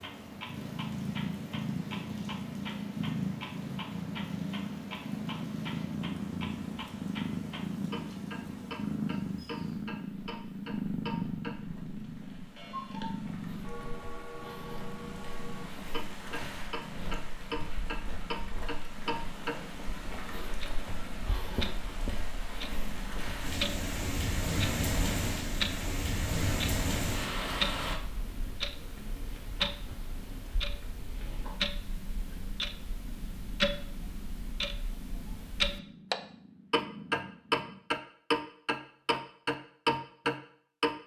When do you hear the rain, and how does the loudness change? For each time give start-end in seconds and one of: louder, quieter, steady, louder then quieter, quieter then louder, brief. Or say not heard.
0.0-27.9 louder.